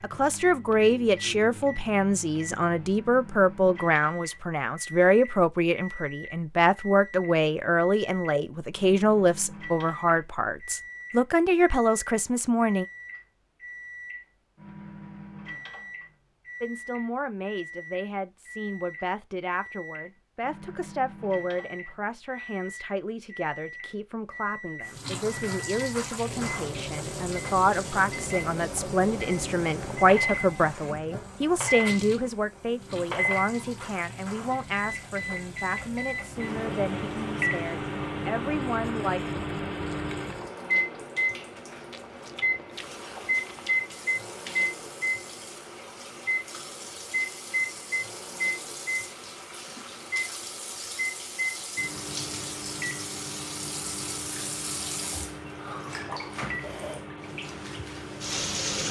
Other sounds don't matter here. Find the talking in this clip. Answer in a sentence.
You can hear the talking from 0.0 to 12.8 s and from 16.6 to 39.4 s.